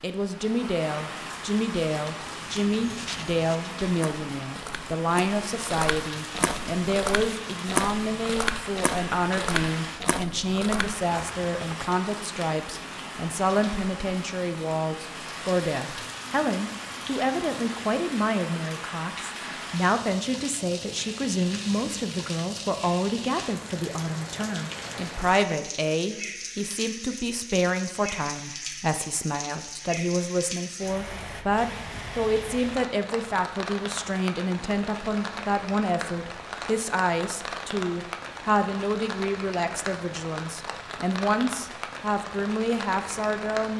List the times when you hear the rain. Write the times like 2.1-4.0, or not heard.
0.0-43.7.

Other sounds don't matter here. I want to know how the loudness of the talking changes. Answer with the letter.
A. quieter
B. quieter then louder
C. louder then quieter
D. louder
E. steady
E.